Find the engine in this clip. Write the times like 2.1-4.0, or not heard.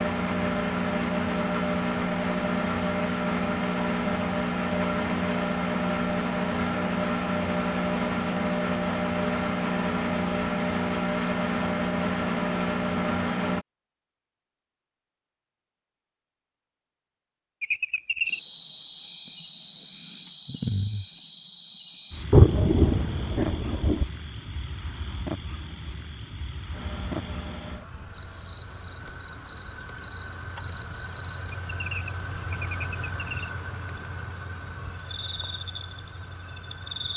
0.0-13.7, 26.7-37.1.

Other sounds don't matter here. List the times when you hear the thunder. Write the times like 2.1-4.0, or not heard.
22.3-24.1.